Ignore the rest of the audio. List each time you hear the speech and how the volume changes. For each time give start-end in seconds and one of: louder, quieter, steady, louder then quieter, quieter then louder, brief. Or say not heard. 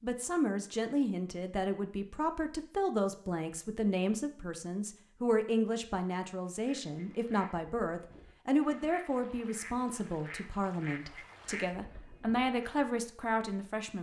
0.0-13.9 steady.